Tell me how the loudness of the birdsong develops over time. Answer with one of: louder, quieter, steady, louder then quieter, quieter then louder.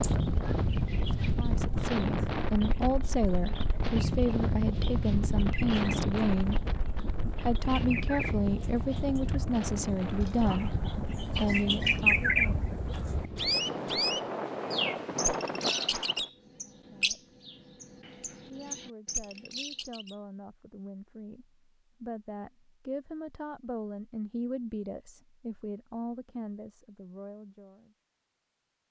louder then quieter.